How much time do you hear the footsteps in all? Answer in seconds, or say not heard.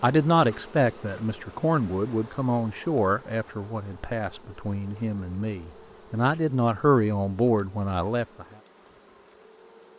not heard.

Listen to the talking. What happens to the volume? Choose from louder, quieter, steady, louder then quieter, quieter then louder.
quieter then louder.